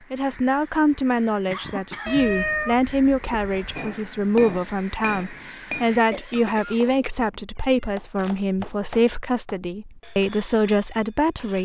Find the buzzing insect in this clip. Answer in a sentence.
The buzzing insect can't be heard in this clip.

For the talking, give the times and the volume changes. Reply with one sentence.
The talking can be heard from 0.1 to 11.6 s, at a steady volume.